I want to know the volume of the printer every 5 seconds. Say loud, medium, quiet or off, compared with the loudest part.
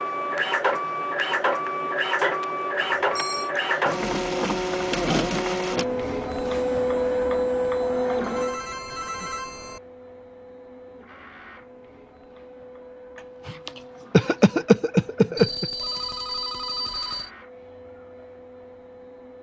loud, loud, quiet, quiet.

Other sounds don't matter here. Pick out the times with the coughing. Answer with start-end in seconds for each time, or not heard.
13.4-15.7.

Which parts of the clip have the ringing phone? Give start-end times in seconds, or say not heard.
3.0-3.5, 8.1-9.8, 15.3-17.3.